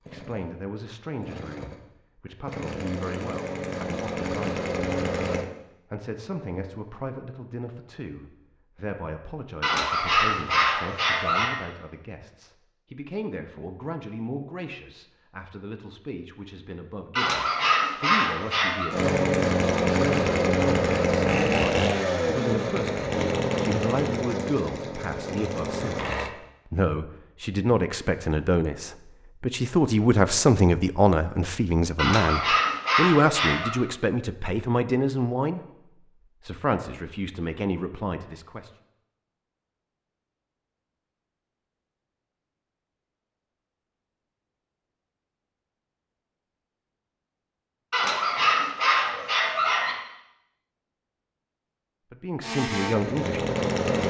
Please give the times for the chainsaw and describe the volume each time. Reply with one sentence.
The chainsaw can be heard from 0.0 to 5.5 s, getting louder; from 18.9 to 26.3 s, getting quieter; and briefly from 52.4 to 54.0 s.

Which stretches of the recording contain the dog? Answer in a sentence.
The dog can be heard from 9.6 to 11.6 s, from 17.1 to 18.9 s, from 31.9 to 33.8 s and from 47.9 to 50.0 s.